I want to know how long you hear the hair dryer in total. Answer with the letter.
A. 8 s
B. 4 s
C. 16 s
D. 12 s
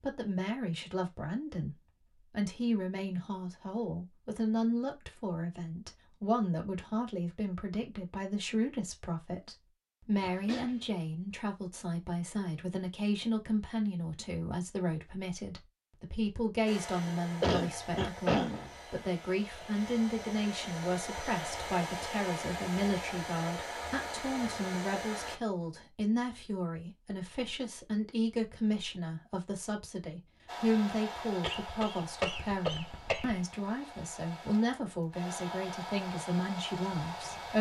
C.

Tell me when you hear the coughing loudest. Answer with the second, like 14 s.
18 s.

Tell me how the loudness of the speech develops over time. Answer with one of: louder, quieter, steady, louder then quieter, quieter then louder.
steady.